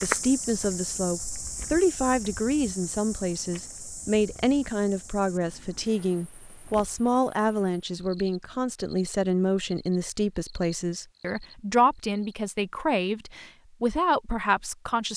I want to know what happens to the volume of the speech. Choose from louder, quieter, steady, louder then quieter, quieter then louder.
steady.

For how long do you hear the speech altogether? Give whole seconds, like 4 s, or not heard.
15 s.